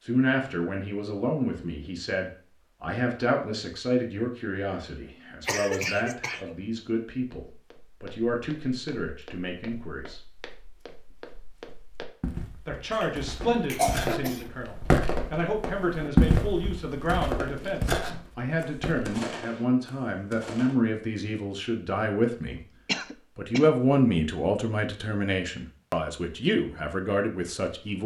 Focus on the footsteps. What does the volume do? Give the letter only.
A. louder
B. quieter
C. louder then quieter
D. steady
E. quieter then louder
C.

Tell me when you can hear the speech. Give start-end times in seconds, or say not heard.
0.0-10.2, 12.7-22.6, 23.4-28.0.